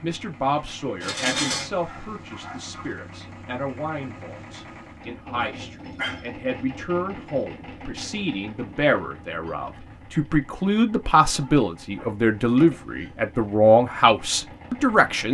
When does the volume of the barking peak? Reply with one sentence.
The volume of the barking peaks at 1 second.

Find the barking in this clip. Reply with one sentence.
The barking can be heard from 1.0 to 2.9 s, from 5.3 to 6.2 s and from 11.3 to 12.8 s.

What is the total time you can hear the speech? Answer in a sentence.
You can hear the speech for 15 seconds altogether.